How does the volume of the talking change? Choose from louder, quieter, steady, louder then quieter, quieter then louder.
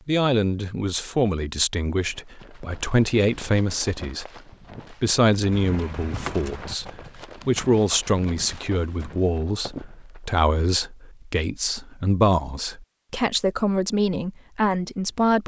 steady.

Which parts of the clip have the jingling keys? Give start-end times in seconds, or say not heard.
5.5-6.8.